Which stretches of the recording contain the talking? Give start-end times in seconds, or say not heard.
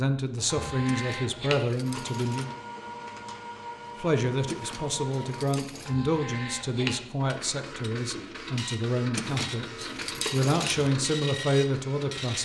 0.0-2.5, 4.0-12.3.